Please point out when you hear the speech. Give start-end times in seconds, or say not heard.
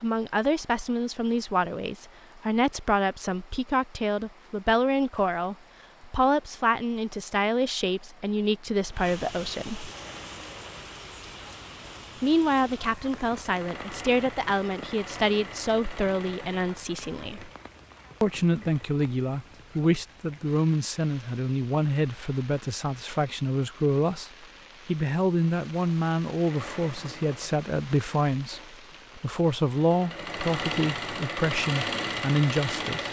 0.0-9.9, 12.2-17.5, 18.2-33.0.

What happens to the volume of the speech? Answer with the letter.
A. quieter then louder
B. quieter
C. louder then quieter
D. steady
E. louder
D.